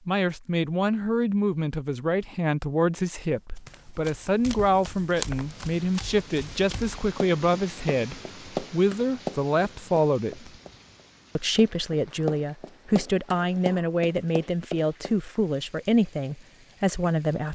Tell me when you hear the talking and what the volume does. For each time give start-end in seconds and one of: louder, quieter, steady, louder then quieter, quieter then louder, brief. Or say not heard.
0.1-10.5 steady
11.3-17.4 steady.